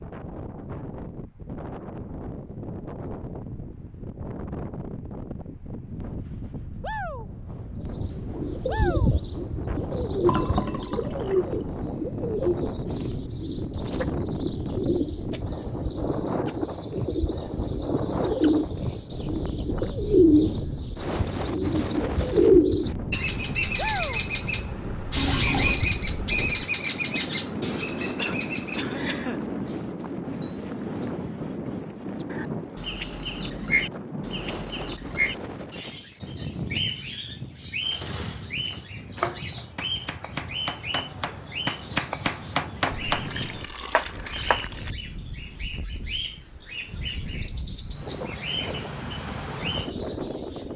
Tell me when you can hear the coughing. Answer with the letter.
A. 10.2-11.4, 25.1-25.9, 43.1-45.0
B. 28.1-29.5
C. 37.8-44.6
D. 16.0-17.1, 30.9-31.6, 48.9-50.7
B.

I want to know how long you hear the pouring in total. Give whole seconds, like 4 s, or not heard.
4 s.